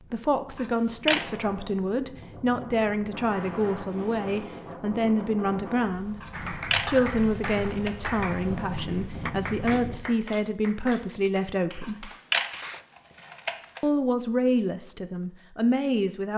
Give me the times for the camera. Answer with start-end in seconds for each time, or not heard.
0.6-1.2, 6.2-7.9, 11.8-13.8.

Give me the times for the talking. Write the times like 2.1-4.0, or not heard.
0.1-12.1, 13.8-16.3.